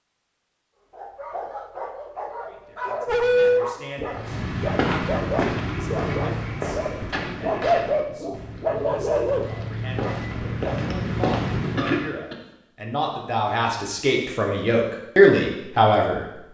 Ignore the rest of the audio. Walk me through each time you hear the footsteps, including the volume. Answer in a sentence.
The footsteps can be heard from 4.1 to 12.2 s, getting quieter then louder.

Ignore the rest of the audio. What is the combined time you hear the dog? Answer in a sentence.
The dog can be heard for 10 seconds in total.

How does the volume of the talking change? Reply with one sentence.
The loudness of the talking goes up.